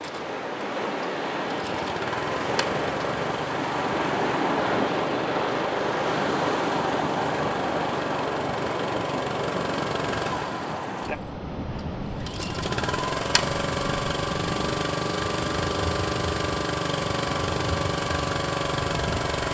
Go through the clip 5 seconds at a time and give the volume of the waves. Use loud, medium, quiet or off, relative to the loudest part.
loud, loud, medium, medium.